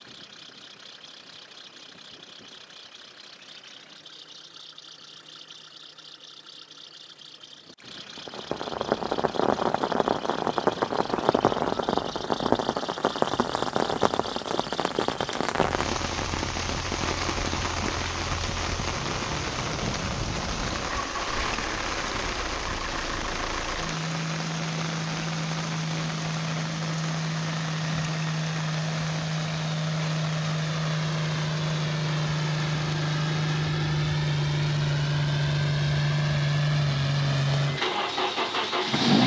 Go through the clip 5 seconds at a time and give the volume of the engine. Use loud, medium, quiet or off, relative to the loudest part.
quiet, quiet, quiet, quiet, medium, medium, loud, loud.